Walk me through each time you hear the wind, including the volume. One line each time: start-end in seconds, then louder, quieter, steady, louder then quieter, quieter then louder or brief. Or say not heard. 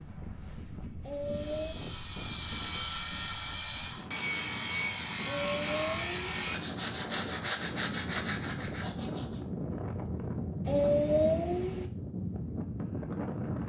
0.0-13.6 louder.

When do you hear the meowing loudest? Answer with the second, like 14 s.
11 s.